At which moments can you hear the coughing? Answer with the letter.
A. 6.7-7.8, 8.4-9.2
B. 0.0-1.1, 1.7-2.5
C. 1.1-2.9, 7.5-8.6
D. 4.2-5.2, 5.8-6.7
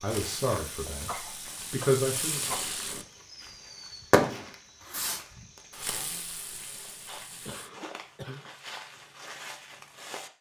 C.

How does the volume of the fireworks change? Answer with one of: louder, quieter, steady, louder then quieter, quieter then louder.
louder then quieter.